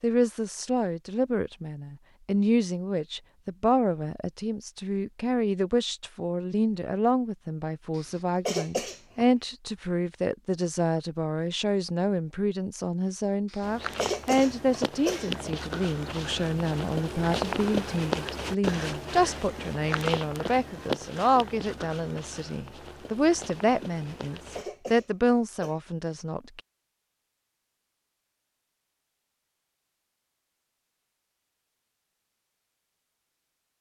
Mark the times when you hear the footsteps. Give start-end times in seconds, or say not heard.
13.6-24.6.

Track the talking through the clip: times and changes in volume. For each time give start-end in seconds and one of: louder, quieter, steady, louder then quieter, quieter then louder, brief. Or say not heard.
0.0-26.6 steady.